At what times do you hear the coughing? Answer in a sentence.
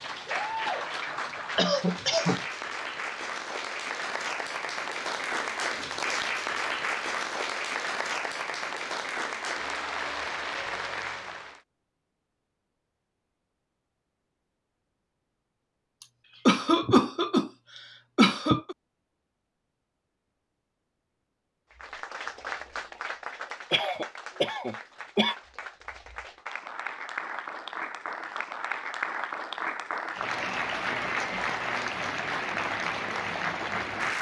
The coughing can be heard from 1.6 to 2.5 s, from 16.0 to 18.8 s and from 23.7 to 25.4 s.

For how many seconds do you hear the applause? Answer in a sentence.
You can hear the applause for 24 seconds altogether.